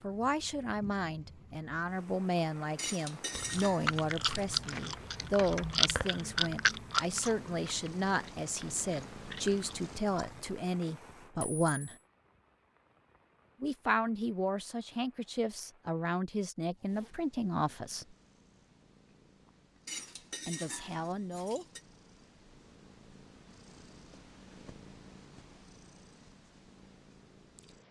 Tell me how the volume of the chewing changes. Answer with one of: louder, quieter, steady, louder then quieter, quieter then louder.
quieter then louder.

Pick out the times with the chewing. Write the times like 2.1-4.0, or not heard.
3.4-10.5.